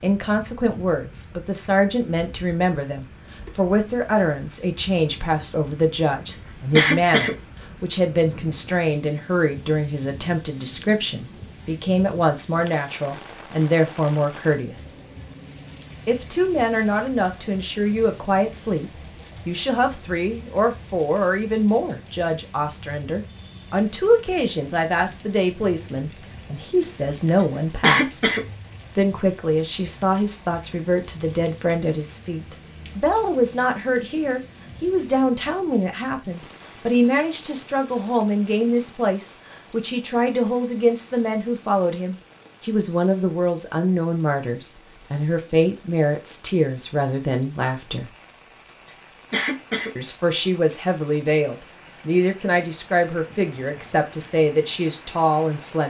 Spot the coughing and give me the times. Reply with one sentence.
The coughing can be heard from 6.7 to 7.3 s, from 27.8 to 28.4 s and from 49.3 to 49.9 s.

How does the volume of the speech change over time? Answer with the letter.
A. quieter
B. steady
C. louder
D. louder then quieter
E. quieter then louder
B.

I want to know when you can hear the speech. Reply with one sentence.
You can hear the speech from 0.0 to 14.9 s, from 16.1 to 28.3 s, from 28.9 to 48.1 s and from 50.0 to 55.8 s.